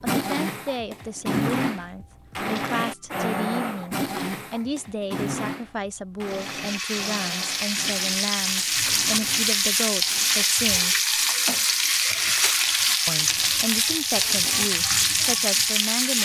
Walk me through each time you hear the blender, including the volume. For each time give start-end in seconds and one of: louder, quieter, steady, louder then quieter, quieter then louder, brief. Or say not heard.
0.0-10.6 quieter.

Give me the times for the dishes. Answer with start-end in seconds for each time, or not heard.
not heard.